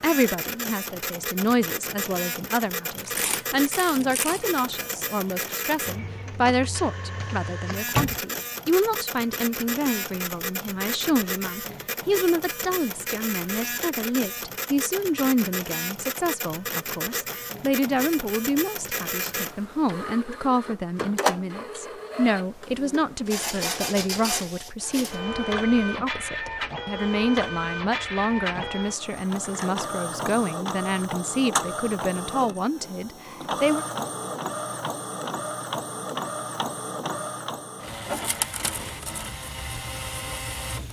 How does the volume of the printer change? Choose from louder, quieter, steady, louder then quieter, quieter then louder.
steady.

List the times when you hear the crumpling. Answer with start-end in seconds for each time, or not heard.
3.0-4.5.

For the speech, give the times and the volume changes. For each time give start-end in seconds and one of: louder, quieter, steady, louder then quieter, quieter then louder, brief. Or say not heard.
0.0-33.9 steady.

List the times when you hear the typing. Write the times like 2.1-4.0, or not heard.
not heard.